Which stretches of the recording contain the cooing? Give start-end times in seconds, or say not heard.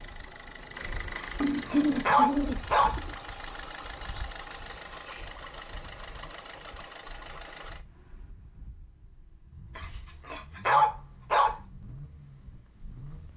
1.4-3.1.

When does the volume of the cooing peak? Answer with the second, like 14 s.
2 s.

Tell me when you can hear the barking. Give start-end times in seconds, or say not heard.
1.1-3.0, 9.8-11.6.